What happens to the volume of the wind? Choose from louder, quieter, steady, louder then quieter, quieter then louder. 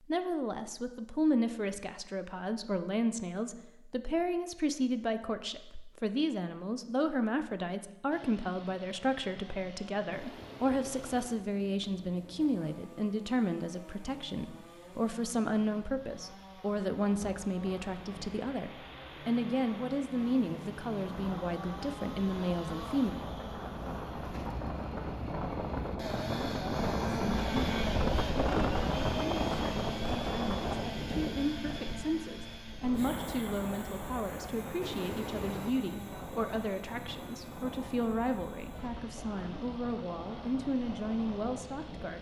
louder then quieter.